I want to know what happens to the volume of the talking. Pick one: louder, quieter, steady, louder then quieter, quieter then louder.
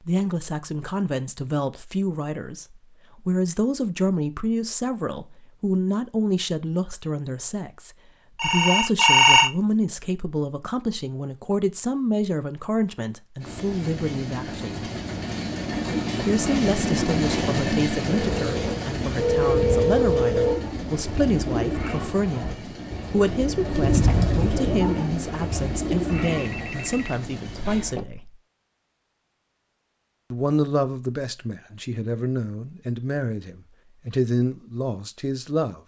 steady.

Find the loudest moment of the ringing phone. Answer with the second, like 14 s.
9 s.